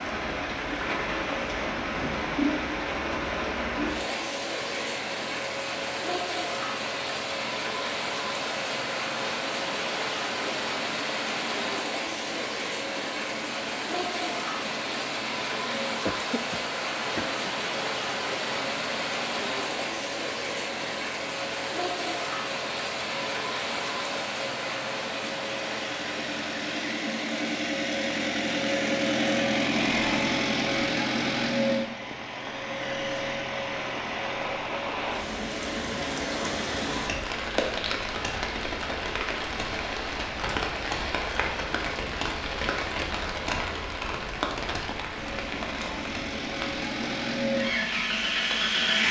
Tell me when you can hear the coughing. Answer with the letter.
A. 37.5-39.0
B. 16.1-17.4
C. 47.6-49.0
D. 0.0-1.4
B.